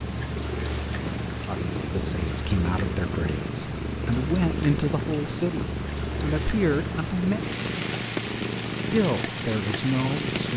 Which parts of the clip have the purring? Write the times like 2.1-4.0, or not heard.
0.0-10.5.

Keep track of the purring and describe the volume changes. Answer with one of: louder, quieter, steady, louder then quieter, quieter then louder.
steady.